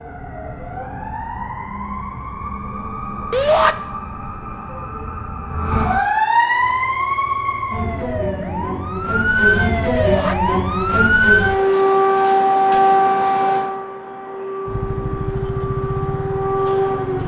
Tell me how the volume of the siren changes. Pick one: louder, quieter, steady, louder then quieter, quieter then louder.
louder then quieter.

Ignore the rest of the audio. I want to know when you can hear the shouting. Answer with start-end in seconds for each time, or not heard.
3.3-3.8, 9.9-10.3.